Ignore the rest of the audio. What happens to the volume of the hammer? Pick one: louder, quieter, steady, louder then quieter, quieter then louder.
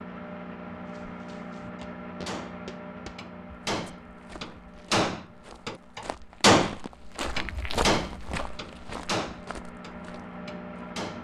louder then quieter.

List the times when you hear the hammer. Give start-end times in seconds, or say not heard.
1.6-6.8, 7.3-11.2.